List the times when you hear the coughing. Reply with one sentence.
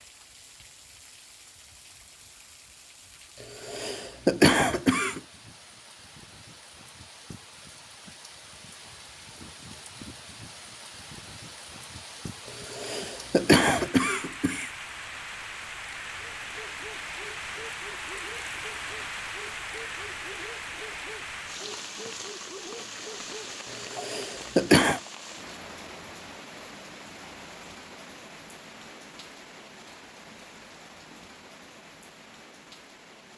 The coughing can be heard from 3.6 to 5.2 s, from 12.7 to 14.7 s and from 23.9 to 25.0 s.